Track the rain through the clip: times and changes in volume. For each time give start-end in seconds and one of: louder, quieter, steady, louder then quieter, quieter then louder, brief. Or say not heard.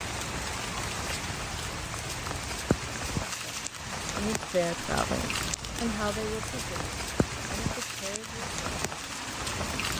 0.0-9.9 steady.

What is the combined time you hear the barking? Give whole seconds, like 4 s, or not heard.
not heard.